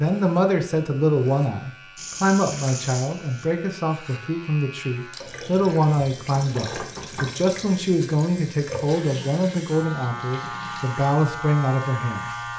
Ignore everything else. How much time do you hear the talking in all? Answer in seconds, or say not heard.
12 s.